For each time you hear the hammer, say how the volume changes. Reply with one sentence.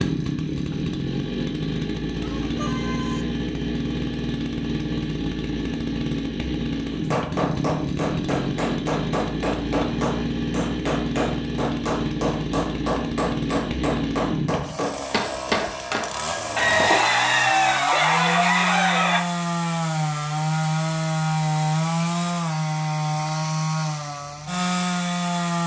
The hammer can be heard from 6.9 to 17.0 s, at a steady volume.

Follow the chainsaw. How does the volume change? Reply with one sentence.
The loudness of the chainsaw stays about the same.